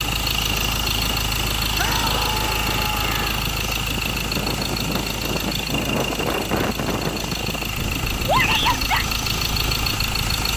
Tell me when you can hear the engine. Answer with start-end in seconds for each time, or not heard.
0.0-10.5.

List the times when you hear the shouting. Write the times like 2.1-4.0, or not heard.
1.8-3.4, 8.2-9.1.